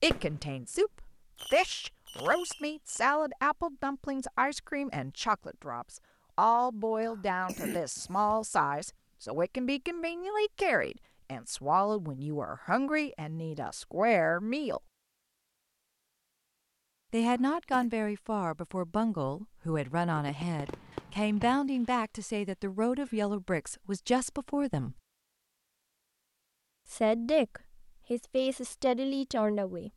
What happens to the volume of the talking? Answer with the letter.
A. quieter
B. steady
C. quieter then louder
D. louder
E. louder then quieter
B.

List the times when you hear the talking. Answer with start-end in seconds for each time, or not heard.
0.0-14.8, 17.1-24.9, 26.9-29.9.